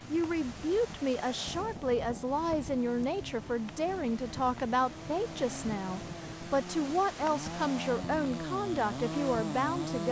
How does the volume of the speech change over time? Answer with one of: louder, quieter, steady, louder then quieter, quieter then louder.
steady.